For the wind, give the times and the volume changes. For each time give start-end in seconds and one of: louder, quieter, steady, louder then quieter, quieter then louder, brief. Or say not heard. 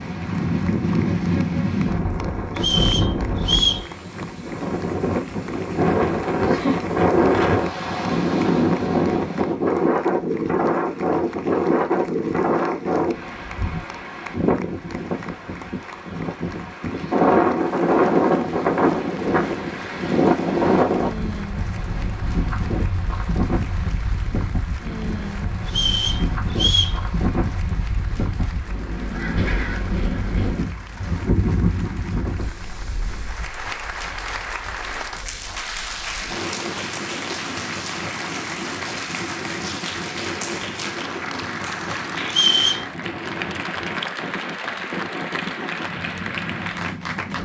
0.0-47.3 quieter.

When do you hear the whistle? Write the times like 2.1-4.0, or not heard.
2.5-3.9, 25.6-27.0, 42.2-42.9.